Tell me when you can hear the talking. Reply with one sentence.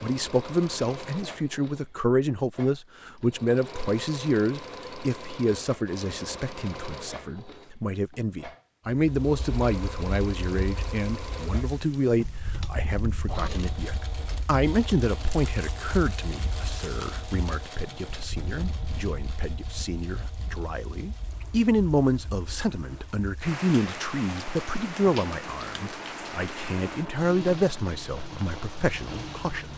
You can hear the talking from 0.0 to 29.7 s.